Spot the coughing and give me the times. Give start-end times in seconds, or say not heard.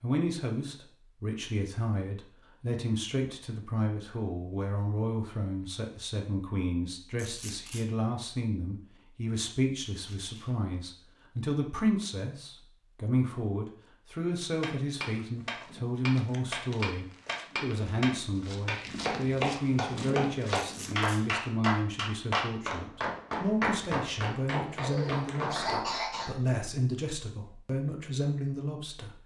24.9-26.4.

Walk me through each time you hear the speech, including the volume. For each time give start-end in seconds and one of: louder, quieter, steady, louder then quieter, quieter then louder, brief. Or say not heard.
0.0-29.2 steady.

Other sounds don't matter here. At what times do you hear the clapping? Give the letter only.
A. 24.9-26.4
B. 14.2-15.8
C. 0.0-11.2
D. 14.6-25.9
D.